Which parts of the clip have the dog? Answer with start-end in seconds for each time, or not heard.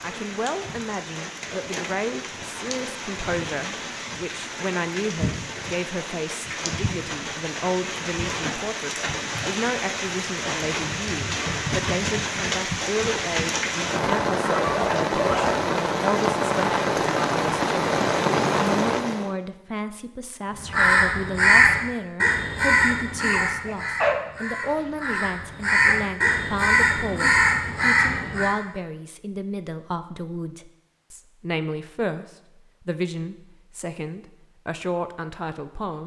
13.8-15.7, 23.2-25.2.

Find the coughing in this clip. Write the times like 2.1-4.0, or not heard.
not heard.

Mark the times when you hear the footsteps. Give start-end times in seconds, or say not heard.
not heard.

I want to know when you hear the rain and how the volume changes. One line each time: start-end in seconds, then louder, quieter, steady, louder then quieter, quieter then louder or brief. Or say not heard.
0.0-19.3 louder.